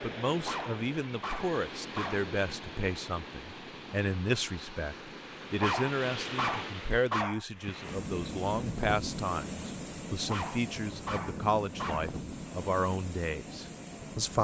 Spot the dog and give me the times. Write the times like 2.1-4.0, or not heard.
0.5-2.3, 5.6-7.5, 10.2-12.2.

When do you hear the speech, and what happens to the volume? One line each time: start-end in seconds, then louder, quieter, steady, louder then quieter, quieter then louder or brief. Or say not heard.
0.0-14.3 steady.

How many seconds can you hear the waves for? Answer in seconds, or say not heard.
14 s.